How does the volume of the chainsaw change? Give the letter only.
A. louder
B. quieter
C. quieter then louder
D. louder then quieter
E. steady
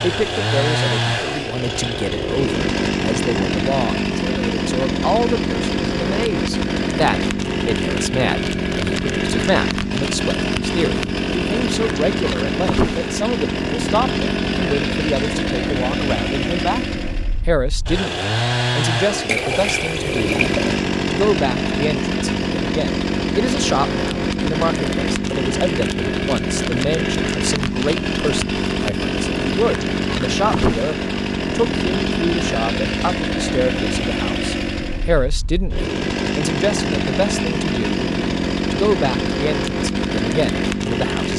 E.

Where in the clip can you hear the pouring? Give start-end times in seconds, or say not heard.
19.2-20.8.